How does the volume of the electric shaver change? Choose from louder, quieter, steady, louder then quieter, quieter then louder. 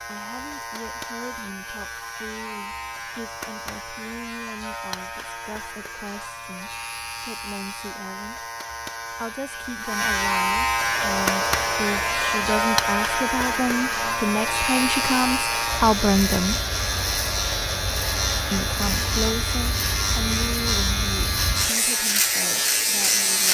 louder.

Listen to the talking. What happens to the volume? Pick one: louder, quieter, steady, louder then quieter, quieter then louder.
louder then quieter.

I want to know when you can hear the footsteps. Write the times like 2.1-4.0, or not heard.
not heard.